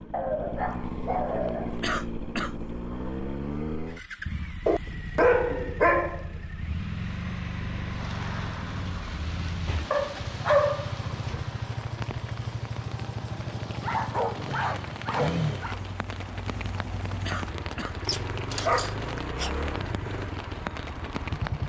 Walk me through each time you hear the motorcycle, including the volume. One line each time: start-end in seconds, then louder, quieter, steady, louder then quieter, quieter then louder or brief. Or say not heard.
0.0-21.6 steady.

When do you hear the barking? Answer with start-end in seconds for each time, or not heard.
0.1-1.9, 4.7-6.2, 9.9-11.4, 13.8-15.8, 18.1-19.5.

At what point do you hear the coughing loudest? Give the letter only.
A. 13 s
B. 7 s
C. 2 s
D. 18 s
C.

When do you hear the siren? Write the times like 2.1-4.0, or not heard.
not heard.